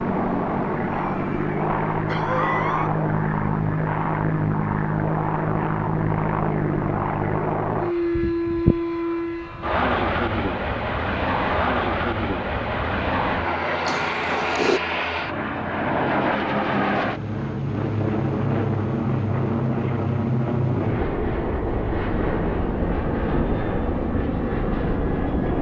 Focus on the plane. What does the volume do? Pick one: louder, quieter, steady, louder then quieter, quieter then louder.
steady.